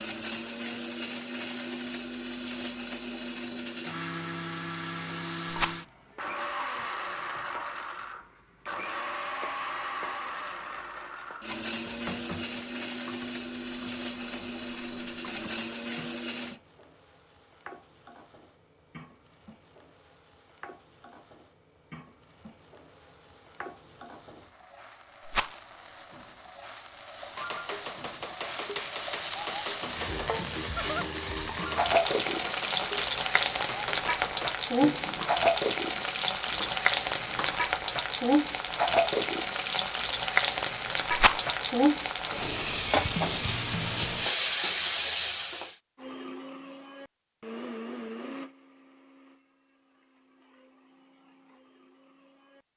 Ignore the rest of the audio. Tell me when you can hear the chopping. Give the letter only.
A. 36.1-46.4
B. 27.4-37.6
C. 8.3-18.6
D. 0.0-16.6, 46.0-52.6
B.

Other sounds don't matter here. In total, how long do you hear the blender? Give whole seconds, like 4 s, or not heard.
23 s.